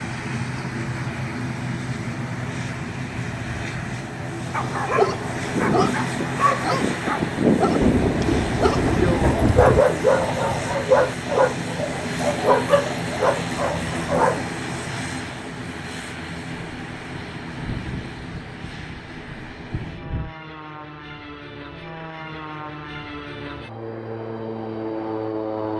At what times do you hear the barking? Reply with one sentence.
You can hear the barking from 4.5 to 14.4 s.